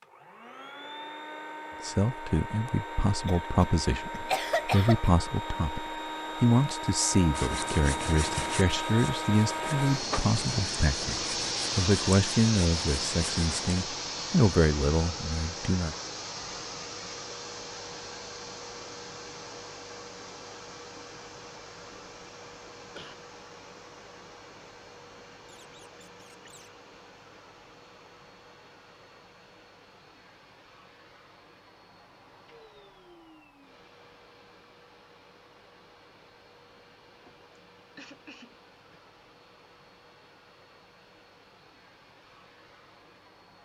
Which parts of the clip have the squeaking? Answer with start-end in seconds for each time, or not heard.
25.4-26.7.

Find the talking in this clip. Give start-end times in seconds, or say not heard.
1.8-15.9.